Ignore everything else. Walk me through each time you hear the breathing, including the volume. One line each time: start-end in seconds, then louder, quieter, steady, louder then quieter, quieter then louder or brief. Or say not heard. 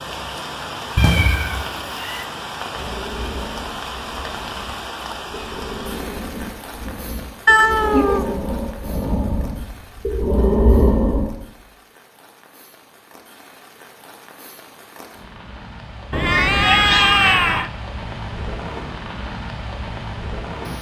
2.8-11.3 louder.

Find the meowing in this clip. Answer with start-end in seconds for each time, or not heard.
0.9-2.2, 7.5-8.2, 16.1-17.7.